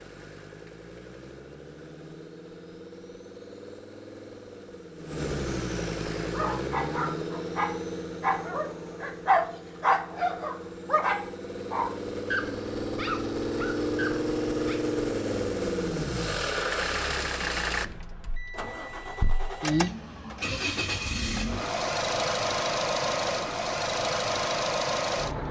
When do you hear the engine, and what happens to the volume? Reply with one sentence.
The engine can be heard from 0.0 to 25.4 s, getting louder.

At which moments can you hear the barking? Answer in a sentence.
The barking can be heard from 6.3 to 14.8 s.